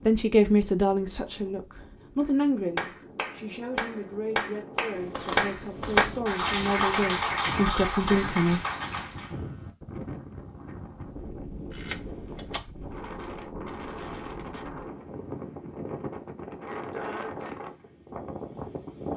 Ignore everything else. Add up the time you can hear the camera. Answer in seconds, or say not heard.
2 s.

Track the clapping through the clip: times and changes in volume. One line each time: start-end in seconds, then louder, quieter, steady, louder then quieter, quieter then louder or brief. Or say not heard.
2.8-9.3 louder then quieter.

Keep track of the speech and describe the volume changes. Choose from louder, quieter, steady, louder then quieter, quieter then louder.
quieter then louder.